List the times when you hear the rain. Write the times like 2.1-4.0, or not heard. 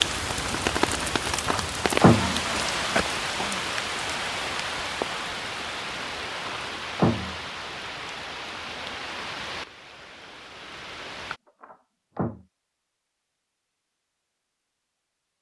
0.0-11.4.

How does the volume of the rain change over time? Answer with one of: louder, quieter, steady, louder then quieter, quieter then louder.
quieter.